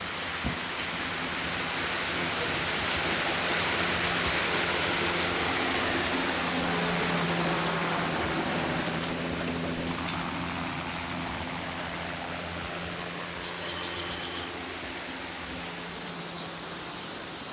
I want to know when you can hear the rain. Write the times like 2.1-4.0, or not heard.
0.0-17.4.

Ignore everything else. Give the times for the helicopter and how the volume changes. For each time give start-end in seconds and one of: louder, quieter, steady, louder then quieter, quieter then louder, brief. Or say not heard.
0.0-17.4 louder then quieter.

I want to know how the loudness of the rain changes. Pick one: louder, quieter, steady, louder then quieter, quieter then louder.
quieter.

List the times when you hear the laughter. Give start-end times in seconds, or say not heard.
13.4-14.6.